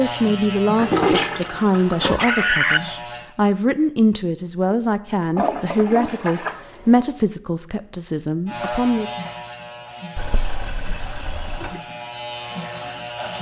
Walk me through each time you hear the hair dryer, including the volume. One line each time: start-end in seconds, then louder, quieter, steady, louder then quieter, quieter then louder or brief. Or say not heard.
not heard.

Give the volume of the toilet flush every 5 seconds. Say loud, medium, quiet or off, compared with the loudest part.
loud, medium, quiet.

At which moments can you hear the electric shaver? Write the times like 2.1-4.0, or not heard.
0.0-3.3, 8.4-13.3.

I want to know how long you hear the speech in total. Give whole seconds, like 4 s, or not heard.
9 s.